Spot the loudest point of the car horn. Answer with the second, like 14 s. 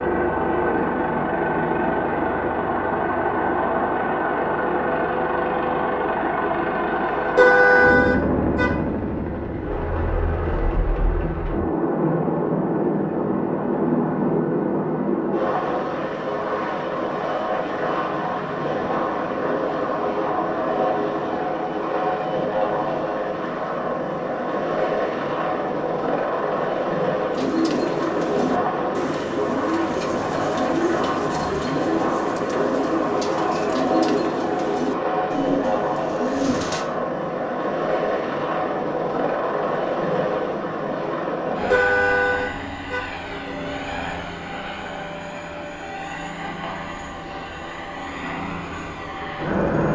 8 s.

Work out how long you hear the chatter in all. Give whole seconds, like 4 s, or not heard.
not heard.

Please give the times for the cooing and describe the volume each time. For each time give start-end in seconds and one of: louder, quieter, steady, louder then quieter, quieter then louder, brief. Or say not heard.
27.3-36.9 steady.